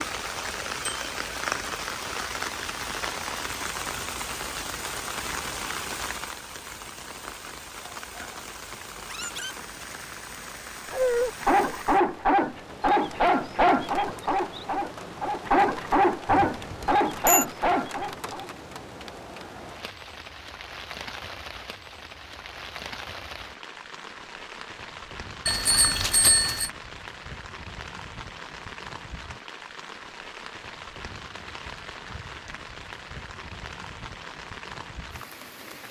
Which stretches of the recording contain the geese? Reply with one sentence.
You can't hear the geese here.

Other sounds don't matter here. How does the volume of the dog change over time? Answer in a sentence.
The volume of the dog goes up.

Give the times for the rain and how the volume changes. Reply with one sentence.
The rain can be heard from 0.0 to 35.8 s, getting quieter.